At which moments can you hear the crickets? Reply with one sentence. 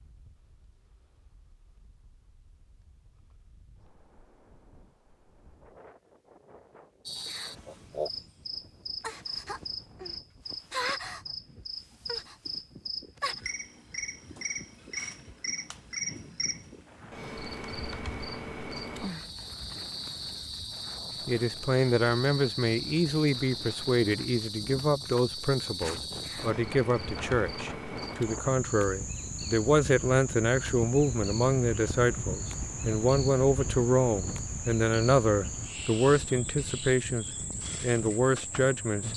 You can hear the crickets from 7.0 to 39.1 s.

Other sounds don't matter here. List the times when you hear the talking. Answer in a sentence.
You can hear the talking from 21.2 to 39.1 s.